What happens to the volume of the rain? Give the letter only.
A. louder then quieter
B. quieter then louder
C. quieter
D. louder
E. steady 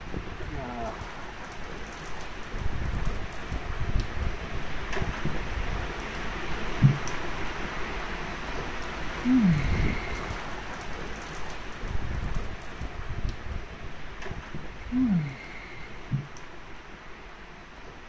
A.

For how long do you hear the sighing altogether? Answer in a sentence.
The sighing can be heard for 3 seconds in total.